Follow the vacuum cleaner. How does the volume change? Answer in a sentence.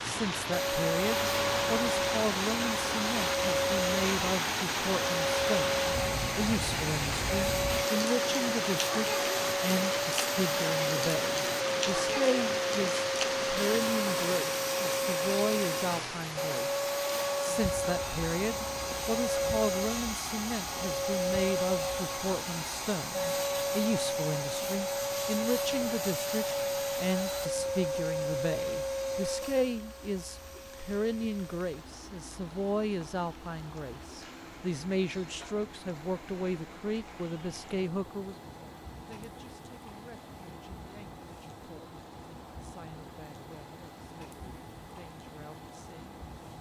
The loudness of the vacuum cleaner goes down.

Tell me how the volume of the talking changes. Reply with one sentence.
The volume of the talking goes down.